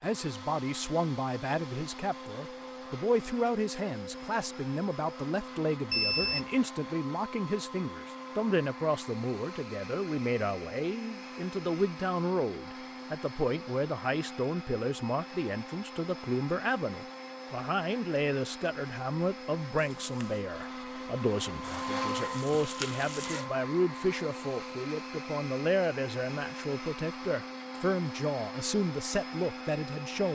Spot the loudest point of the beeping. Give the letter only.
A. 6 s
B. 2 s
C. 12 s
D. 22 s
A.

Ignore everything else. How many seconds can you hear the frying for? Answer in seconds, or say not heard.
2 s.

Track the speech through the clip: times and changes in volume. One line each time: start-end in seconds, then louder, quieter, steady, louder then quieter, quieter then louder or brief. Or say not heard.
0.0-30.3 steady.